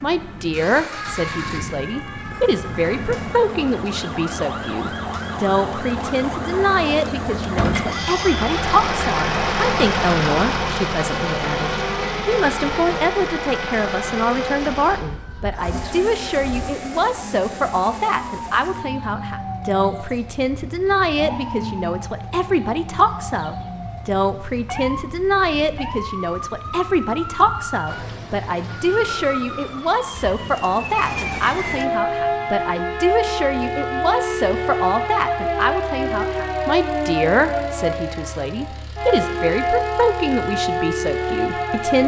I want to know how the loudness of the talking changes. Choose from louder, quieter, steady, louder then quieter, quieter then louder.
steady.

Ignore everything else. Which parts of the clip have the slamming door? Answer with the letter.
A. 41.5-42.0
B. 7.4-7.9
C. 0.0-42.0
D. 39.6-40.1
B.